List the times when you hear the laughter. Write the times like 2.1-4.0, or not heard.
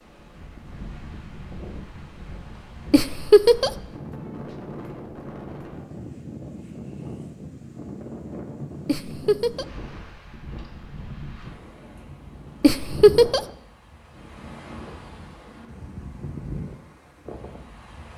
2.9-3.7, 8.8-9.7, 12.6-13.4.